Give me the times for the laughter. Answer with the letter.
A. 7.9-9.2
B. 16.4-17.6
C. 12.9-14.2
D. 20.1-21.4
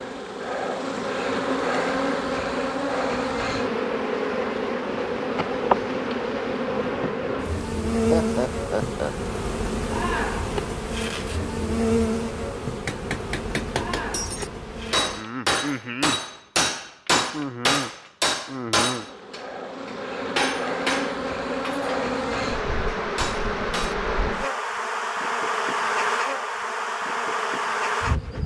A.